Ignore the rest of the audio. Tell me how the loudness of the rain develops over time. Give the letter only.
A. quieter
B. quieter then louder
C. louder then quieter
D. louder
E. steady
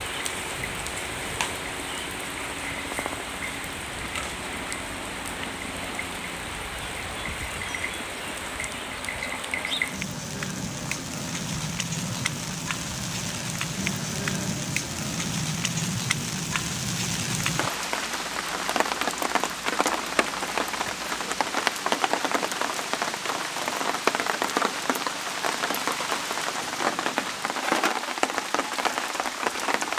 D.